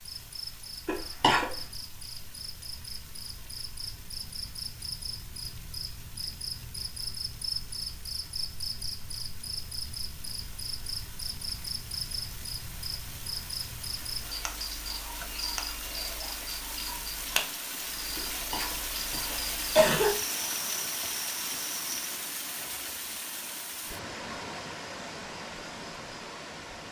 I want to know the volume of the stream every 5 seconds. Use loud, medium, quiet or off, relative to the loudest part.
quiet, quiet, medium, loud, loud, loud.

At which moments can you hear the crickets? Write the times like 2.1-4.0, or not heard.
0.0-21.9.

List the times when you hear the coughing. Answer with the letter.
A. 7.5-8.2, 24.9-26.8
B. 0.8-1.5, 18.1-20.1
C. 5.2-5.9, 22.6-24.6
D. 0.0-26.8
B.